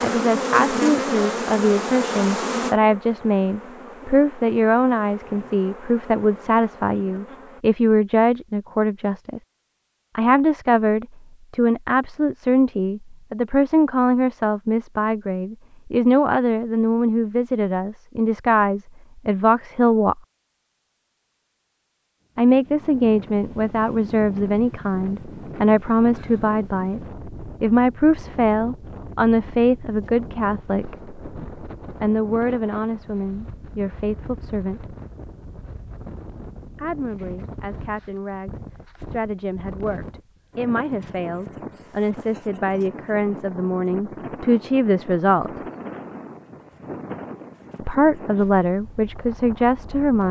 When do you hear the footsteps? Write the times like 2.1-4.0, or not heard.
not heard.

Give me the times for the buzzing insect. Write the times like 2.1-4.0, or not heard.
0.0-7.7.